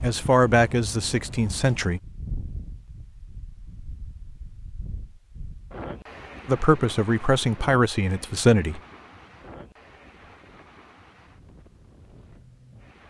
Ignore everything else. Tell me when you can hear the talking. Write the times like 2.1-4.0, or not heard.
0.0-2.0, 6.5-8.8.